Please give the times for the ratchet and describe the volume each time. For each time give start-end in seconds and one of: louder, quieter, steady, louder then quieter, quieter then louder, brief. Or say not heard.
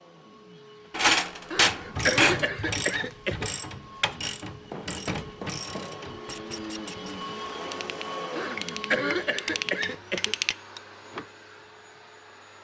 1.6-11.2 quieter then louder.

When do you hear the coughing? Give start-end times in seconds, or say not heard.
1.5-3.5, 8.3-10.3.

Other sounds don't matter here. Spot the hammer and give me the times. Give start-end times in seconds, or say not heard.
0.9-2.5, 4.7-6.0, 8.6-10.6.